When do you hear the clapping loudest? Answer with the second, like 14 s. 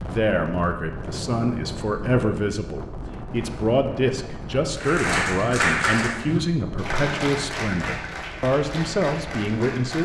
6 s.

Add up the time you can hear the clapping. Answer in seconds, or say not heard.
5 s.